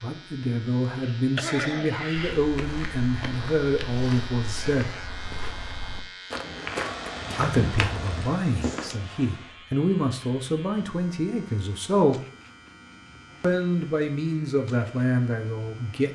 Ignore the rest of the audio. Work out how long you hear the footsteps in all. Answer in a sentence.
The footsteps can be heard for 7 seconds in total.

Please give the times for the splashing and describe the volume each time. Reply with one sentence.
You can't hear the splashing here.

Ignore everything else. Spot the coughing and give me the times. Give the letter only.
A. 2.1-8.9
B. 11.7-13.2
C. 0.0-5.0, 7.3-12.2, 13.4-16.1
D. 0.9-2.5
D.